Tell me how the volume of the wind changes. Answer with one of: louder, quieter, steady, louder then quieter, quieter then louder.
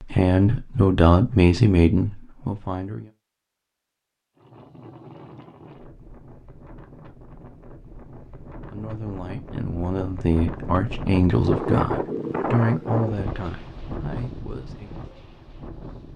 louder then quieter.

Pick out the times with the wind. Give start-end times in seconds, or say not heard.
4.3-16.1.